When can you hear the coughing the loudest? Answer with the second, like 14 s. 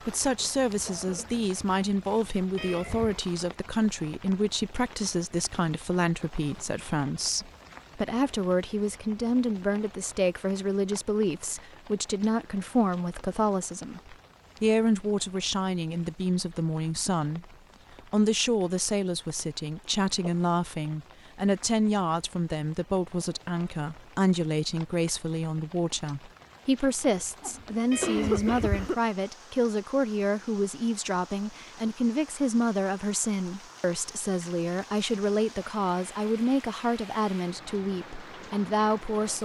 28 s.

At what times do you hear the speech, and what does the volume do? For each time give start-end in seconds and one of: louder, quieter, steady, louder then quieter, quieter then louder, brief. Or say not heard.
0.1-17.4 steady
18.1-39.4 steady.